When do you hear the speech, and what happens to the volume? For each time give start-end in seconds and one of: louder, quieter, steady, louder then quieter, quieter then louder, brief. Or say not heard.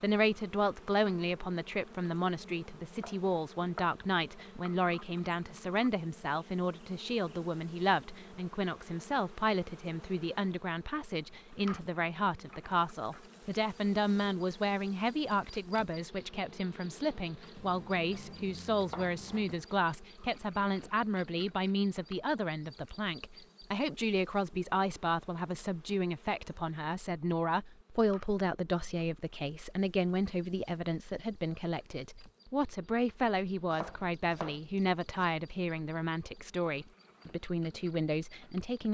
0.0-38.9 steady.